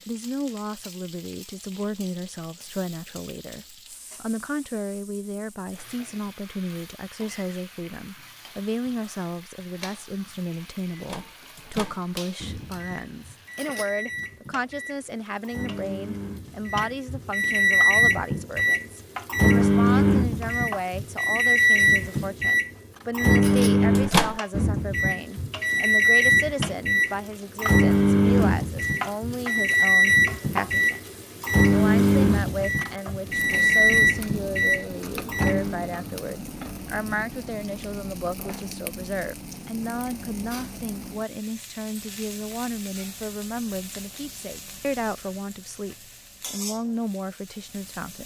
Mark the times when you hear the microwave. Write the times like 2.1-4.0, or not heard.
10.9-35.9.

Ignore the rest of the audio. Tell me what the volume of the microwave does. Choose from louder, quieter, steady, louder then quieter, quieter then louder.
louder.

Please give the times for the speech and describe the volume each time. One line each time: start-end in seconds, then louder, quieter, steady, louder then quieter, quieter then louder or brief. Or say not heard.
0.1-48.2 steady.